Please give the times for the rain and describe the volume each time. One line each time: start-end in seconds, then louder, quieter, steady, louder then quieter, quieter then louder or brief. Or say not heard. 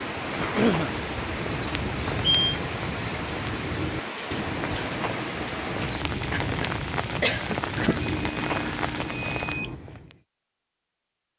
0.0-9.7 steady.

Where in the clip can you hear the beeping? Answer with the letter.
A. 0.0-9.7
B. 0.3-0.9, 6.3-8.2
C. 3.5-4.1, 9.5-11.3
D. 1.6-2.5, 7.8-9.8
D.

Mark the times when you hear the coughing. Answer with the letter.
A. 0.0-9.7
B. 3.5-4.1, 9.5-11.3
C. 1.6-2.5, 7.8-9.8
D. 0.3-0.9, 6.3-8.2
D.